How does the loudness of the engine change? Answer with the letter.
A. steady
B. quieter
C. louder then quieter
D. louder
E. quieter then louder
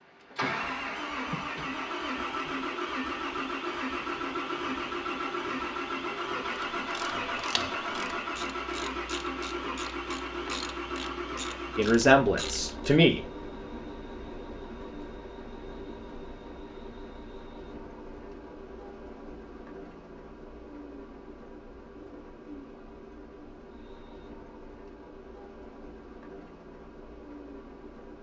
B.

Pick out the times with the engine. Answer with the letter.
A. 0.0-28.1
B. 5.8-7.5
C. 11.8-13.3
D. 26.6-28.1
A.